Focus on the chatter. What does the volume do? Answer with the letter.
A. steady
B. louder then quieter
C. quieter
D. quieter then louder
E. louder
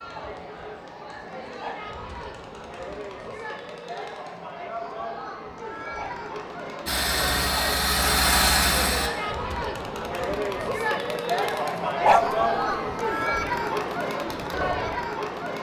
E.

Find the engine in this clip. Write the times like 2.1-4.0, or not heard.
6.8-9.1.